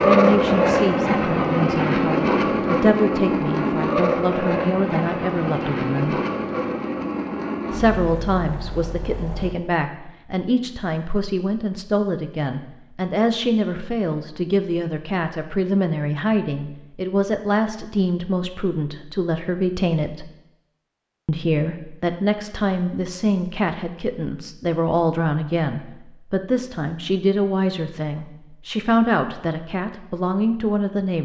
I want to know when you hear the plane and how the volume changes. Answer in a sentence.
The plane can be heard from 0.0 to 9.6 s, getting quieter.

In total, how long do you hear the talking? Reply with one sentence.
The talking can be heard for 29 seconds in total.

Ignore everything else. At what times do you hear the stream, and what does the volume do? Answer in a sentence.
You can't hear the stream here.